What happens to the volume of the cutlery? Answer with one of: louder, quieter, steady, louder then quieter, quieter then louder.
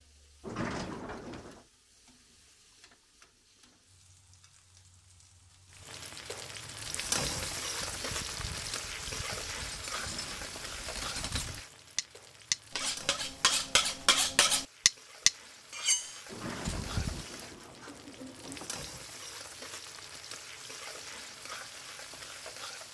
louder.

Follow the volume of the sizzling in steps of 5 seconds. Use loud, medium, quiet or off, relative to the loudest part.
quiet, loud, medium, medium, medium.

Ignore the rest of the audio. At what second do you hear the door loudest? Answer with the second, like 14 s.
1 s.